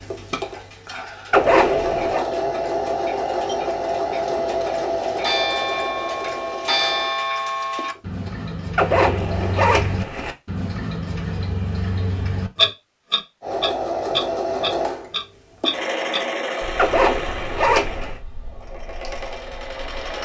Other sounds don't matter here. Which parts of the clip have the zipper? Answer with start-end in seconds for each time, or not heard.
1.3-2.2, 8.8-10.3, 16.8-18.1.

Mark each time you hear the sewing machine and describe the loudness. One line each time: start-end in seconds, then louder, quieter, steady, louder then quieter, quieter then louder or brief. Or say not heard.
0.0-9.6 quieter
13.4-20.2 quieter.